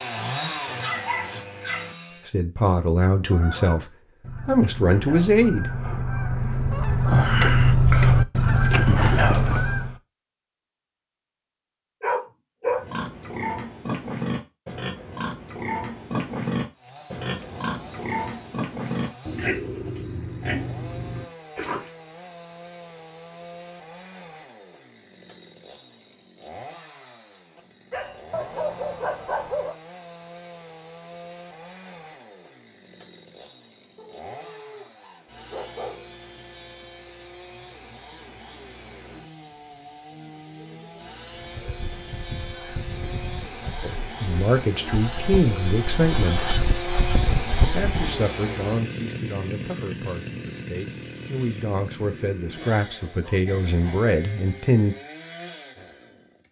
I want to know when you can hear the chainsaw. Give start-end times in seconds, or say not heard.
0.0-2.3, 16.7-56.4.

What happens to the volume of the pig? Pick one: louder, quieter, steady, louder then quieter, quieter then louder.
steady.